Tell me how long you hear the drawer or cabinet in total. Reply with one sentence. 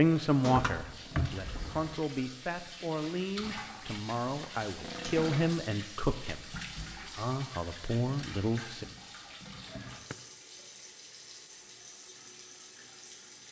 The drawer or cabinet can be heard for 3 seconds in total.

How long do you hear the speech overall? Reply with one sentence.
You can hear the speech for 9 seconds altogether.